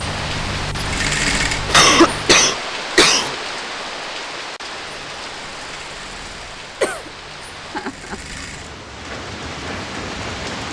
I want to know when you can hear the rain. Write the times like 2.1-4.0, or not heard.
0.0-10.6.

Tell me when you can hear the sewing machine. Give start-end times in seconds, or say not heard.
0.0-2.5, 4.7-8.8.